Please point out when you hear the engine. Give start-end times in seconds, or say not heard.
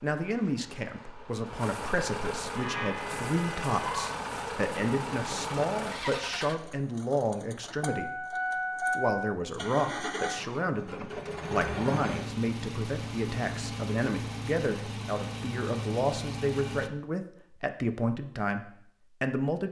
0.0-16.9.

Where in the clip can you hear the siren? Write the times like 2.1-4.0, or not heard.
2.5-4.2.